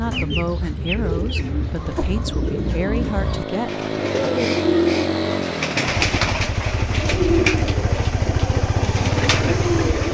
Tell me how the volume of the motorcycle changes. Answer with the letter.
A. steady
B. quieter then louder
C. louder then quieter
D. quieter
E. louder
E.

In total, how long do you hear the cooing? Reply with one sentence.
The cooing can be heard for 10 seconds in total.